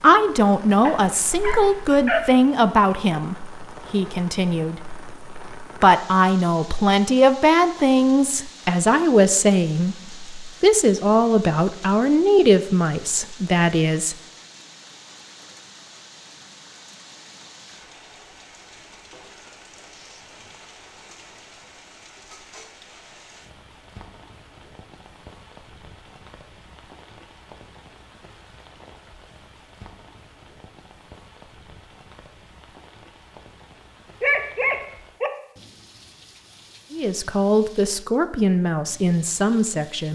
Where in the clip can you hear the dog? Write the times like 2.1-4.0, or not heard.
0.8-2.3, 34.2-35.3.